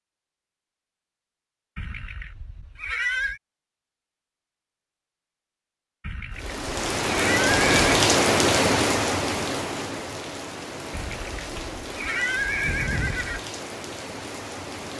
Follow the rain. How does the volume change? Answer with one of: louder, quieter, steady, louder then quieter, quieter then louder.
quieter.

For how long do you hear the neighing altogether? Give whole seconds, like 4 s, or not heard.
6 s.